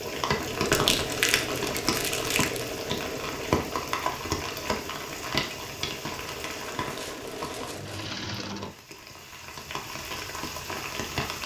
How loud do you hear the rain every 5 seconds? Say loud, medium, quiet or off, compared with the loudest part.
loud, medium, loud.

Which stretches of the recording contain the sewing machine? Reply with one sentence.
You can hear the sewing machine from 0.0 to 8.8 s.